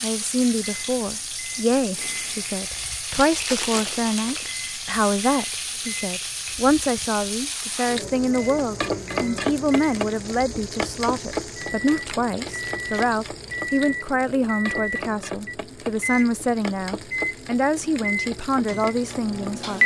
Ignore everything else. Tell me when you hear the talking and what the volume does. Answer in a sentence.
The talking can be heard from 0.0 to 19.8 s, at a steady volume.